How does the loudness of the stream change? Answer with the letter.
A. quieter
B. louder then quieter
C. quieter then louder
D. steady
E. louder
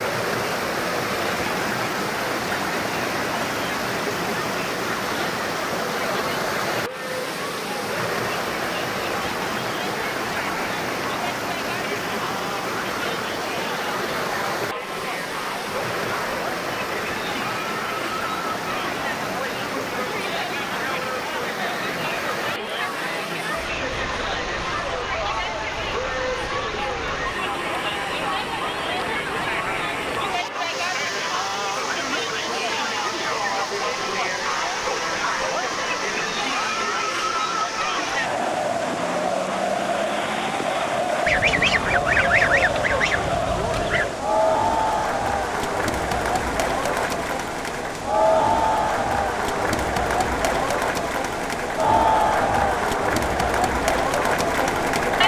A.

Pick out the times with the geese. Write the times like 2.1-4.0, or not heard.
41.2-44.1.